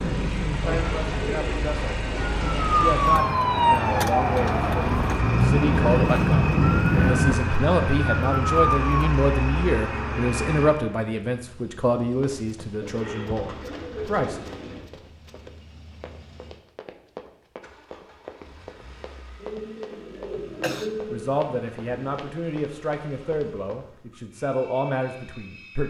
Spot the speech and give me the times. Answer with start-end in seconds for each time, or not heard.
0.0-14.4, 21.1-25.8.